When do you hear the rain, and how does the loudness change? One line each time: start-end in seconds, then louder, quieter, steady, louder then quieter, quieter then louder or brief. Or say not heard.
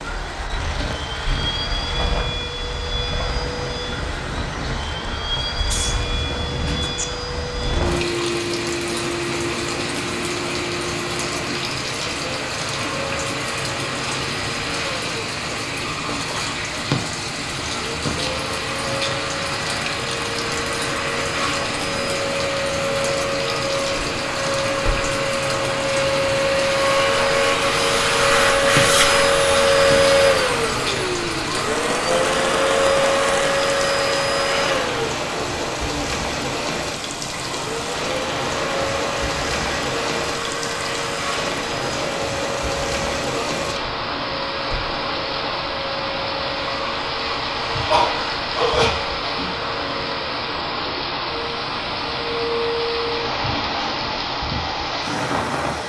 0.0-55.8 steady.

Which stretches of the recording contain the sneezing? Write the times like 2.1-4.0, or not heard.
5.7-7.0, 47.9-49.0.